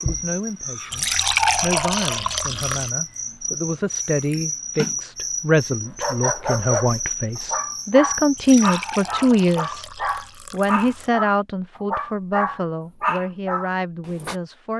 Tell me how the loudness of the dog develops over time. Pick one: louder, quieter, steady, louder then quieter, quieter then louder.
steady.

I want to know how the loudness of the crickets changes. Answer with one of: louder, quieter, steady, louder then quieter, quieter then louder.
steady.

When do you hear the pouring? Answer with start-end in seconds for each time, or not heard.
0.9-2.9, 8.3-11.1.